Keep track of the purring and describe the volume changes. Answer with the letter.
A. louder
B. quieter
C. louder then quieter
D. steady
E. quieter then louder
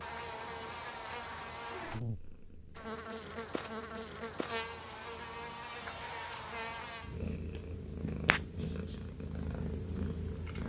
A.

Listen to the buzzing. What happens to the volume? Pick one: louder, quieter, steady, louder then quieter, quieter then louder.
steady.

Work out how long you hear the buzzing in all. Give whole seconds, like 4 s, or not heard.
7 s.